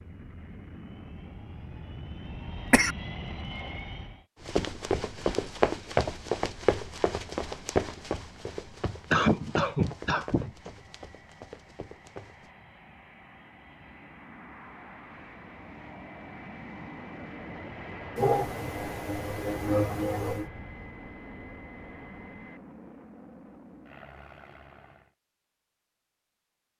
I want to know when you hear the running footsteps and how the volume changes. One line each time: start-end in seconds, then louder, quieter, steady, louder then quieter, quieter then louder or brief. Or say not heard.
4.4-12.5 quieter.